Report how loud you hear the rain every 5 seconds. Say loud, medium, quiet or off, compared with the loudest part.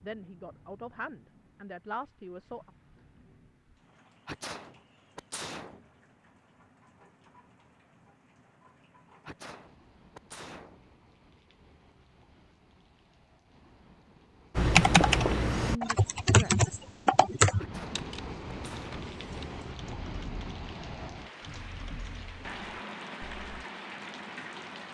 quiet, quiet, quiet, loud, loud.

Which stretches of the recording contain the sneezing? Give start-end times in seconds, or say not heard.
4.2-5.8, 9.2-10.8, 17.6-19.0.